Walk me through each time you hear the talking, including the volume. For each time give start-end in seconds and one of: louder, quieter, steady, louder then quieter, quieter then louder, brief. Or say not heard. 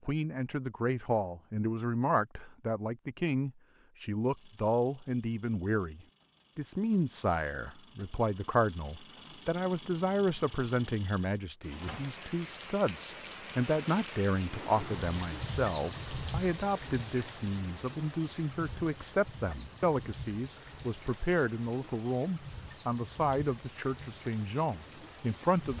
0.1-25.7 steady.